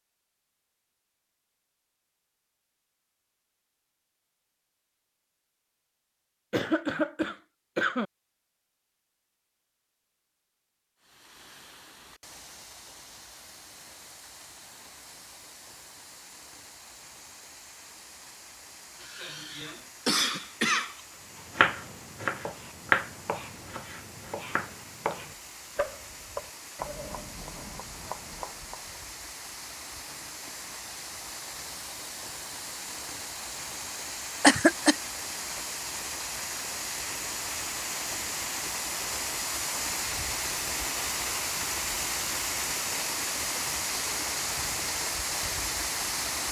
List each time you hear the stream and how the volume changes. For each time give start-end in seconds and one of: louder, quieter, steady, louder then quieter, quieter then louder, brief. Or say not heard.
10.9-46.4 louder.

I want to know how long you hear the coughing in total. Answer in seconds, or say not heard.
4 s.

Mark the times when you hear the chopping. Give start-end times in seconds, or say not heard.
21.6-29.0.